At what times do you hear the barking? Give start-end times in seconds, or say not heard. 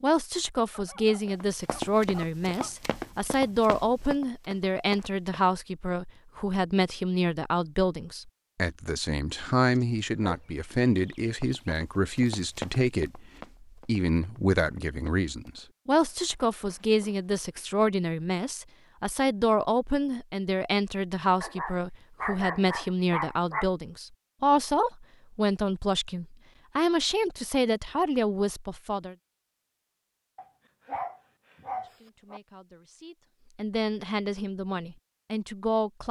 0.7-2.8, 9.8-11.8, 21.4-23.6, 30.4-32.4.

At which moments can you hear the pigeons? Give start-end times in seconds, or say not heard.
not heard.